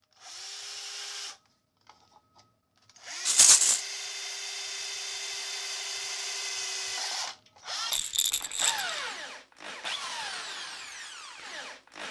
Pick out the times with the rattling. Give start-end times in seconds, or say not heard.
3.2-3.8, 7.9-8.9.